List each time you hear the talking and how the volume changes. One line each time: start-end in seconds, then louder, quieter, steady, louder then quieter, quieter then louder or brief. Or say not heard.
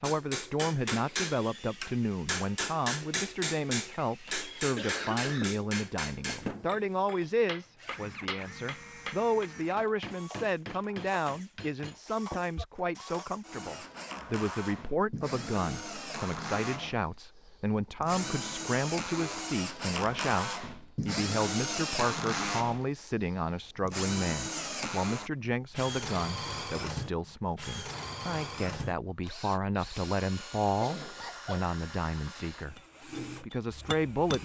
0.0-32.8 steady
33.4-34.4 brief.